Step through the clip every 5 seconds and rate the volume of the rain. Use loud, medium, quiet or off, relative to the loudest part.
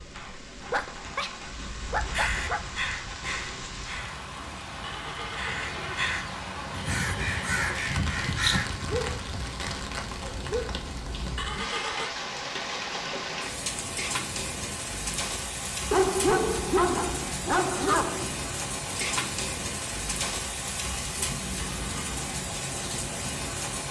medium, loud, loud, loud, loud.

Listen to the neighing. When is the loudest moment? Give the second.
12 s.